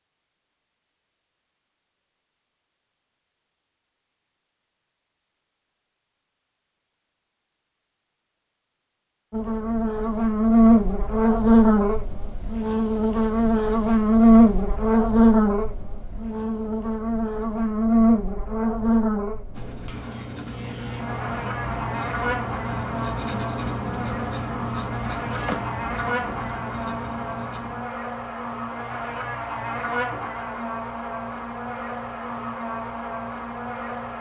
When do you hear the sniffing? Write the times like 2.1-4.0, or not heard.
not heard.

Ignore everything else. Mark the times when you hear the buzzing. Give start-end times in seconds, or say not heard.
9.3-34.1.